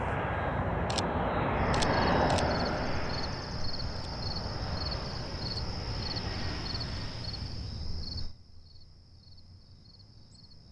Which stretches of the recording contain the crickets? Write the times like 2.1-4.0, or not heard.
1.6-10.6.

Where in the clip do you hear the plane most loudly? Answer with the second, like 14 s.
2 s.